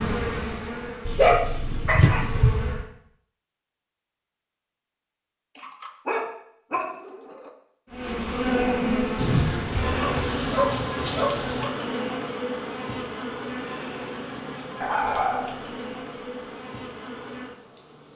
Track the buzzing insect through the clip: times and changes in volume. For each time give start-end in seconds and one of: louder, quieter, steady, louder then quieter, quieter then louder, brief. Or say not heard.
0.0-2.9 brief
7.9-18.1 quieter.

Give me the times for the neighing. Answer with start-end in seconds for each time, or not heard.
not heard.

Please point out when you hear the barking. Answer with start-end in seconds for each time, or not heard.
1.1-2.6, 5.5-7.5, 9.2-11.7, 14.8-15.8.